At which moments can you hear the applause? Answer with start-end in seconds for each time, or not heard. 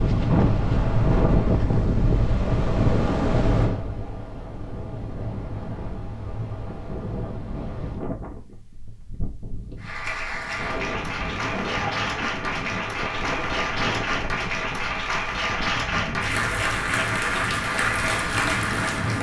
9.8-19.1.